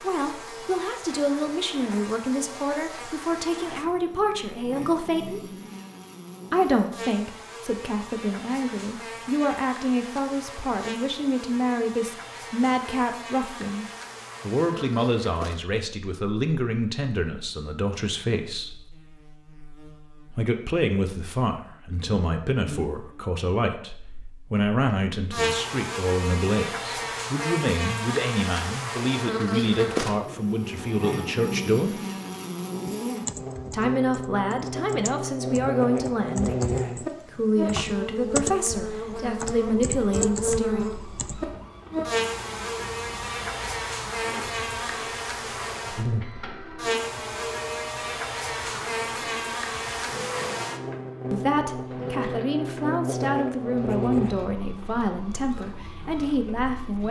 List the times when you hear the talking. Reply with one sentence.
You can hear the talking from 0.0 to 5.5 s, from 6.5 to 18.8 s, from 20.3 to 32.0 s, from 33.7 to 41.0 s and from 51.3 to 57.0 s.